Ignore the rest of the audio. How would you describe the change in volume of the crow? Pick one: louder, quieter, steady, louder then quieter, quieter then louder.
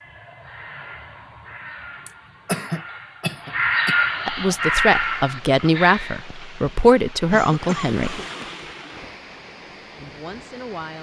louder.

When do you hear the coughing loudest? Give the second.
3 s.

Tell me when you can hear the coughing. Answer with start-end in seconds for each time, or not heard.
2.0-4.0, 7.3-8.2.